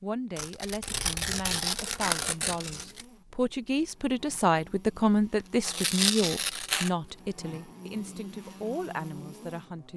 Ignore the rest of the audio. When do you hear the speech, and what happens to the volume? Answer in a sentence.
The speech can be heard from 0.0 to 9.9 s, getting louder then quieter.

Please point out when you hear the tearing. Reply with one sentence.
You can hear the tearing from 0.3 to 3.0 s and from 5.6 to 6.9 s.